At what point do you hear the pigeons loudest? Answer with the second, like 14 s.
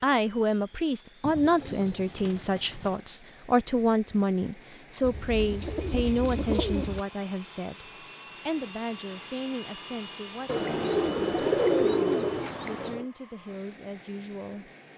12 s.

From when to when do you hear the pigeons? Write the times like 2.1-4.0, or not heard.
1.2-3.0, 5.0-7.0, 10.4-13.1.